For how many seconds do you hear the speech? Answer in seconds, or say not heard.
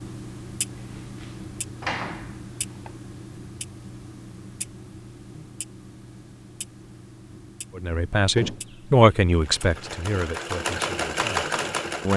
4 s.